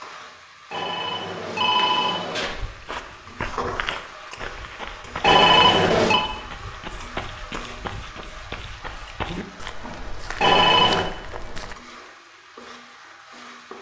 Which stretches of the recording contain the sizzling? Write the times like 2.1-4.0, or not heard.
0.0-13.7.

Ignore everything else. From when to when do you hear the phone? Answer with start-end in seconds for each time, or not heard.
0.7-2.5, 5.2-6.2, 10.4-11.1.